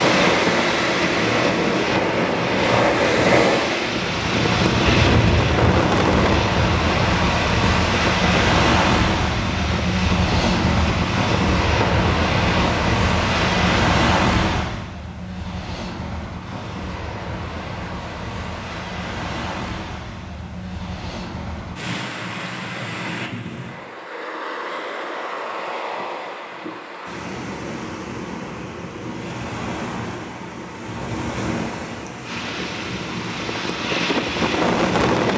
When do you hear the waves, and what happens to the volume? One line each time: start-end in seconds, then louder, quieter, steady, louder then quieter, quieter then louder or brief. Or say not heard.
0.0-35.1 quieter.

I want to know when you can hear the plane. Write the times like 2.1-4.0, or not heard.
0.0-13.7, 32.2-35.3.